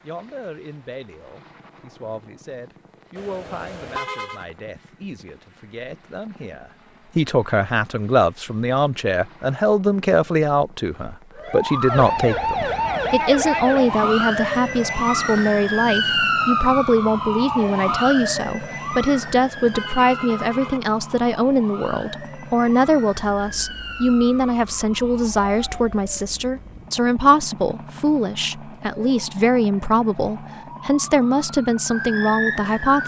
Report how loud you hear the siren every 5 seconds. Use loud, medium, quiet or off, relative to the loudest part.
off, off, loud, loud, quiet, quiet, medium.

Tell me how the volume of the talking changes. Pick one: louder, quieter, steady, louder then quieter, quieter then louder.
louder.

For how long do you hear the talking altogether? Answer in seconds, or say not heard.
33 s.